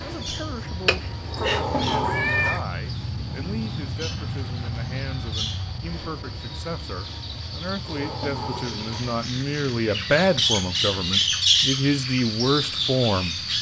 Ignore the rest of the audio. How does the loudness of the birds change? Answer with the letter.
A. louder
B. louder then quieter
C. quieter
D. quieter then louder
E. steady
A.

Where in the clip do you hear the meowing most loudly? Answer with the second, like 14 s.
2 s.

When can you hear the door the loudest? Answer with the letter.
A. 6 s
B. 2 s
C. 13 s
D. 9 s
B.